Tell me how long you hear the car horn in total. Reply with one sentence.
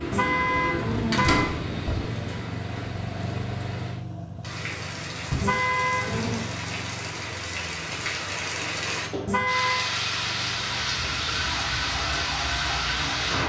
You can hear the car horn for 3 seconds altogether.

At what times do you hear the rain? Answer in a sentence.
The rain can be heard from 0.0 to 13.4 s.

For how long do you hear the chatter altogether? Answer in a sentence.
The chatter can't be heard in this clip.